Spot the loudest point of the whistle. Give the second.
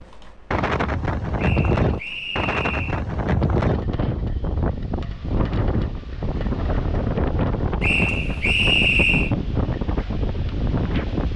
9 s.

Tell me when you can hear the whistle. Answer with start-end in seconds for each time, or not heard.
1.4-3.0, 7.8-9.3.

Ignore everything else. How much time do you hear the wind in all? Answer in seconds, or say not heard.
11 s.